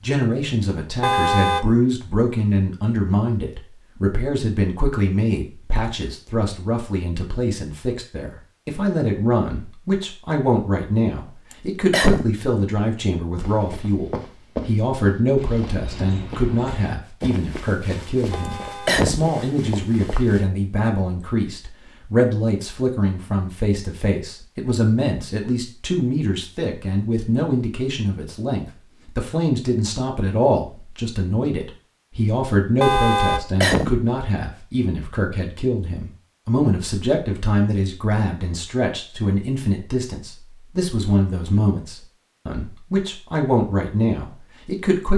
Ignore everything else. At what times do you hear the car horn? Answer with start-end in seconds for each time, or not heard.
1.0-1.7, 18.3-19.0, 32.8-33.5.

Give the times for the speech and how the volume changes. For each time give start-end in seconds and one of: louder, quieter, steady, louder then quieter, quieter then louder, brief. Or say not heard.
0.0-45.1 steady.